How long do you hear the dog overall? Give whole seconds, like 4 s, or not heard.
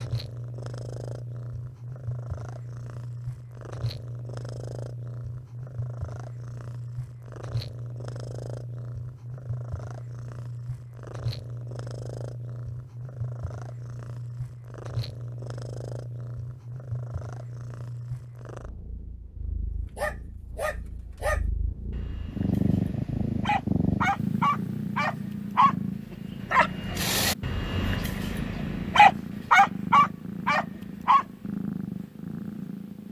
11 s.